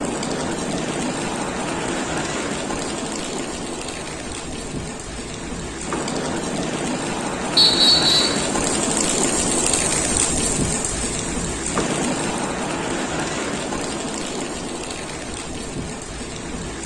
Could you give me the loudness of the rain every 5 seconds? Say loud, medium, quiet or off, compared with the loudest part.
loud, loud, loud, medium.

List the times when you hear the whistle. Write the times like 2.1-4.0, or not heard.
7.5-8.4.